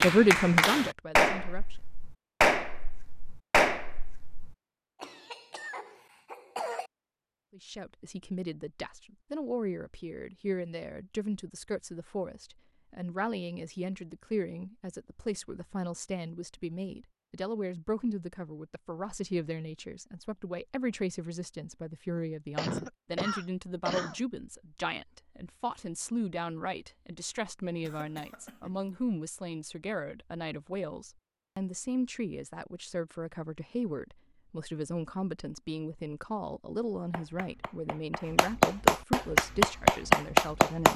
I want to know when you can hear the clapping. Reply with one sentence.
The clapping can be heard from 0.0 to 4.5 s and from 37.1 to 40.9 s.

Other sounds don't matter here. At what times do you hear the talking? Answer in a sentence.
You can hear the talking from 0.0 to 1.8 s and from 7.5 to 40.9 s.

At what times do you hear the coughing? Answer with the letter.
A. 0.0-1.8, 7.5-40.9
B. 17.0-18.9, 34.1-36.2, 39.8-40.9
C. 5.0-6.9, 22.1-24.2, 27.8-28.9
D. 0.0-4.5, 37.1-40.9
C.